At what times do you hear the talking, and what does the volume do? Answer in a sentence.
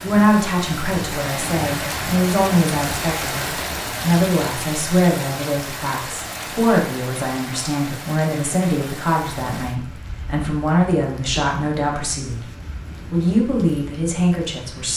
The talking can be heard from 0.0 to 12.5 s, at a steady volume; and briefly from 13.1 to 14.9 s.